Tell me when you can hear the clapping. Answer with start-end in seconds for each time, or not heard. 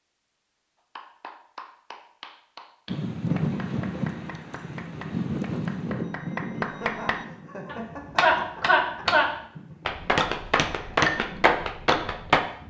0.9-12.4.